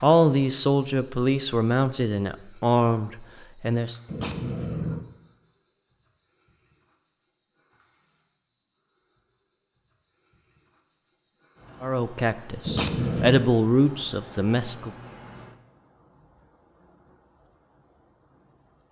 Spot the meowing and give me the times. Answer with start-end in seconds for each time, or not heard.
4.0-5.0, 12.7-13.4.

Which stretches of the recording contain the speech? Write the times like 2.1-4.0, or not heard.
0.0-4.0, 11.8-14.9.